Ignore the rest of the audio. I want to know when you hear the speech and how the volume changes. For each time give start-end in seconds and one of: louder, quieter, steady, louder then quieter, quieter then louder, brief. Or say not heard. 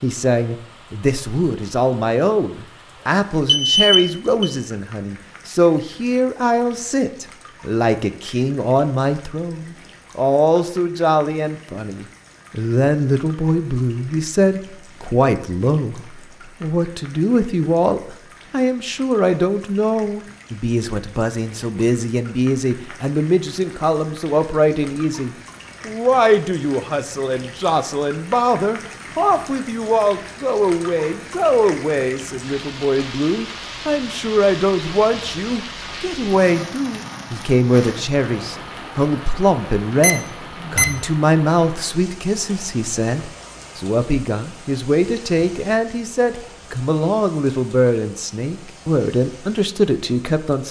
0.0-50.6 steady.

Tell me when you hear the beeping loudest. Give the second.
4 s.